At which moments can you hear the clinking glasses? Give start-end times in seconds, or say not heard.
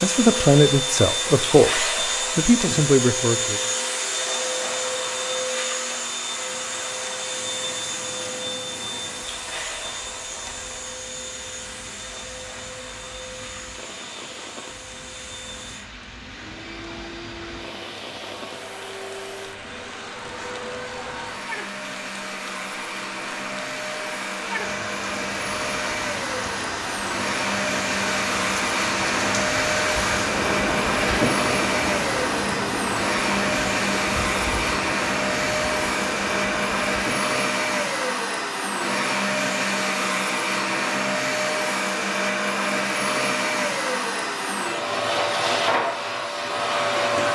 not heard.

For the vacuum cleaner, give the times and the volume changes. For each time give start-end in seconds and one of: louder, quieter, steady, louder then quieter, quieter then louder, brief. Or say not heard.
0.0-47.3 quieter then louder.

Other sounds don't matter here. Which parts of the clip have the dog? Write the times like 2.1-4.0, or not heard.
not heard.